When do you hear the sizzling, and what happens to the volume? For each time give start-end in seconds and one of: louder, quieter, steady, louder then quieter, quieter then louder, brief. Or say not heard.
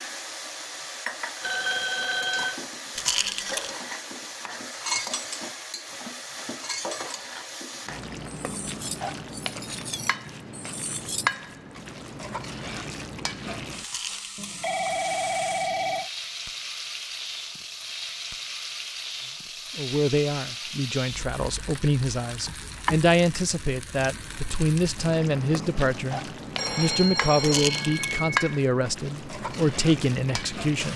0.0-30.9 steady.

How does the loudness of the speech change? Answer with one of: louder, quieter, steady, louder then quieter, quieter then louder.
steady.